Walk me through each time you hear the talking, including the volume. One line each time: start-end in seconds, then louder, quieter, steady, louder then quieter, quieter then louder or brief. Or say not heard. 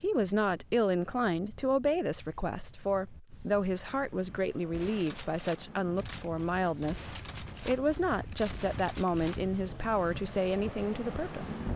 0.0-11.6 steady.